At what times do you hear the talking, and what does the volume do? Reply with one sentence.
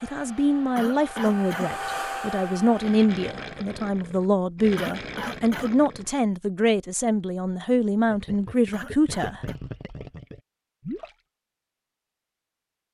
The talking can be heard from 0.0 to 9.4 s, at a steady volume.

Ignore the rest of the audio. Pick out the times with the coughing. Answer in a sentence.
You can hear the coughing from 0.8 to 1.8 s, from 4.8 to 5.8 s and from 8.7 to 9.6 s.